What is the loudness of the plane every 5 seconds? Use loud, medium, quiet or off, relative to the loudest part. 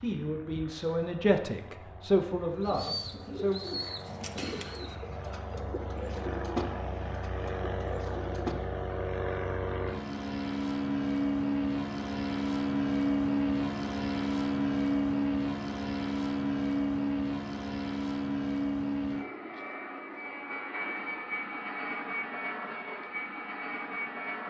quiet, medium, loud, loud, medium.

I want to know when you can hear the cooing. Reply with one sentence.
The cooing can be heard from 2.5 to 8.6 s.